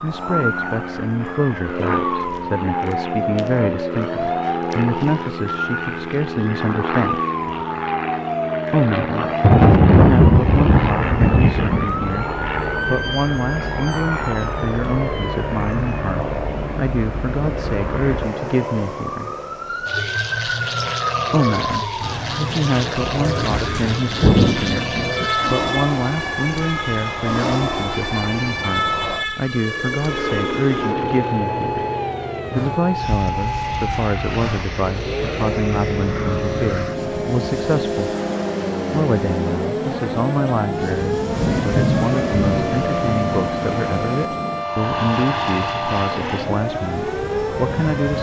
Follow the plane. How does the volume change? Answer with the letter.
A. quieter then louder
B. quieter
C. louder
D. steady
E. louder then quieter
D.